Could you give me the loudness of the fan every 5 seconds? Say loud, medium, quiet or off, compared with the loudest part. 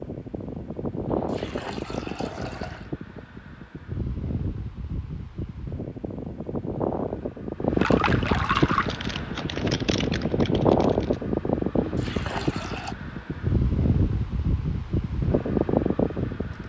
medium, loud, loud, loud.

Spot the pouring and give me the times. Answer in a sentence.
You can hear the pouring from 1.1 to 2.9 s, from 7.8 to 8.9 s and from 11.8 to 12.9 s.